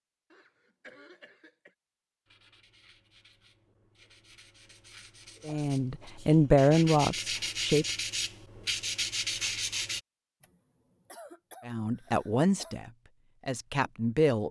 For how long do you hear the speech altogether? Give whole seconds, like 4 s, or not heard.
5 s.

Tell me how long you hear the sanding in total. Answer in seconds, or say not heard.
8 s.